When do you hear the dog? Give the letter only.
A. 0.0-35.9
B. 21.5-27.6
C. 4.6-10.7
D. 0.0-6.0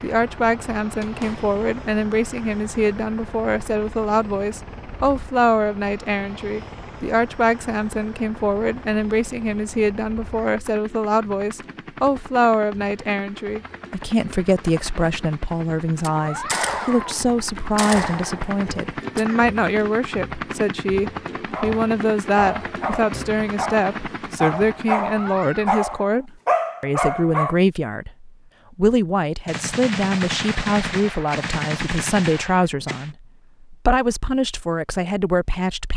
B.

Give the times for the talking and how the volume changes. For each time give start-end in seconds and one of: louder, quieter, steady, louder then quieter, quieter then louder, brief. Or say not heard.
0.0-35.9 steady.